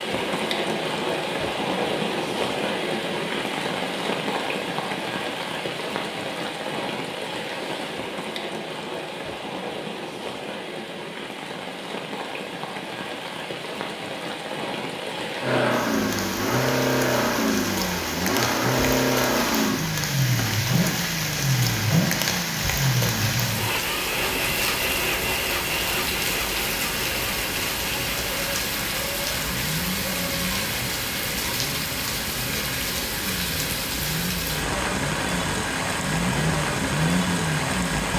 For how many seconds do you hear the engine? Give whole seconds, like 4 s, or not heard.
23 s.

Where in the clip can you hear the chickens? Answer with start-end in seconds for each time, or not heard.
not heard.